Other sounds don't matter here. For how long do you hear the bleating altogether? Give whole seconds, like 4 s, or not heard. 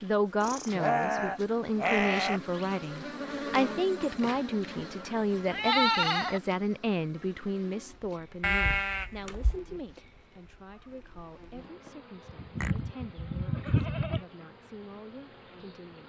7 s.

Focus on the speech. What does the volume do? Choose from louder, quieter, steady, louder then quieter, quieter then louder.
quieter.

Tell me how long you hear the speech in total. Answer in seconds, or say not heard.
16 s.